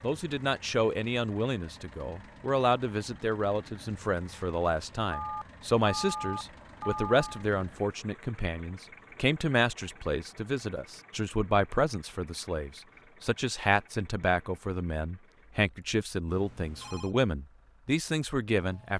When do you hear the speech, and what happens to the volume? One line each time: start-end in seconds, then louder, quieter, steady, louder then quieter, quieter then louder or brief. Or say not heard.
0.0-18.9 steady.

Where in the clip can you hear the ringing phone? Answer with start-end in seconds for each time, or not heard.
5.1-7.5, 16.2-17.1.